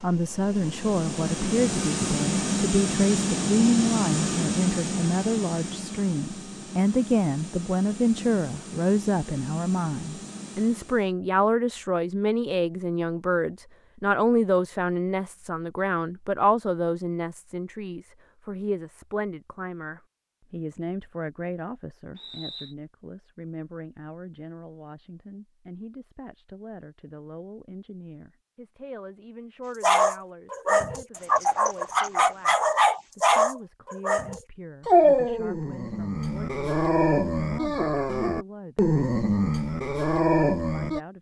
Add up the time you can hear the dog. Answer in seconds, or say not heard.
11 s.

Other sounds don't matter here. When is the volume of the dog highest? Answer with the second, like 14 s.
35 s.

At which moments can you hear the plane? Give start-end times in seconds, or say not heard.
0.0-11.1.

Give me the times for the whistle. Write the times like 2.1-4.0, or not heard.
22.1-22.8.